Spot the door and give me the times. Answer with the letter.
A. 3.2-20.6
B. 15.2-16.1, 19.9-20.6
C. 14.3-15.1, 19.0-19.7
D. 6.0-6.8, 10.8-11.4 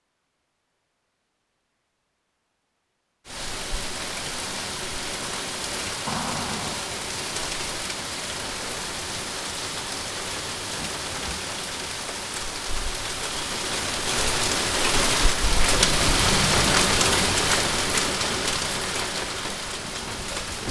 D.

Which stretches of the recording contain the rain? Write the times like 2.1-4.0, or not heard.
3.2-20.6.